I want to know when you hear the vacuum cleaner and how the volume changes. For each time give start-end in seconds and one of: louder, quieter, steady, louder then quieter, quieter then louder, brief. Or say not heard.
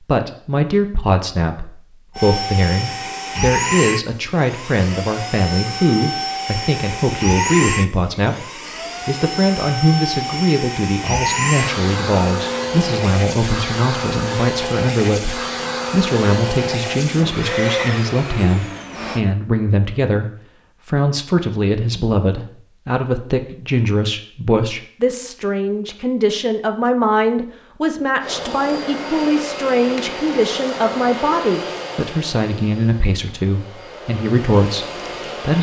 2.1-19.2 steady
28.2-35.5 quieter then louder.